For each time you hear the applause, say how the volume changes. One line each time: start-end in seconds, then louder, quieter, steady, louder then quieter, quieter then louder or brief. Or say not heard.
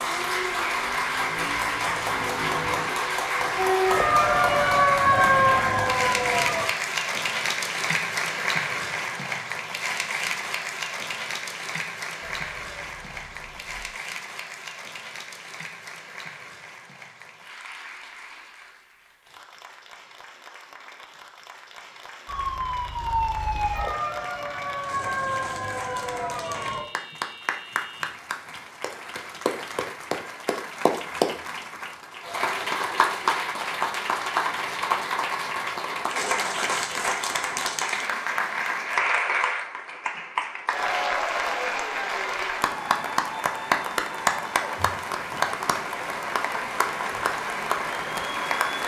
0.0-48.8 quieter then louder.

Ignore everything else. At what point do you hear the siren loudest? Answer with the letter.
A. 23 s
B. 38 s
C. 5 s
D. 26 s
C.